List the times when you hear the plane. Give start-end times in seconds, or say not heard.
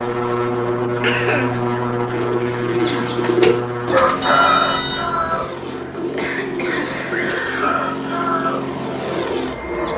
0.0-9.9.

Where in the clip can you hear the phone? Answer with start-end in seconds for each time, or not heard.
4.2-5.5.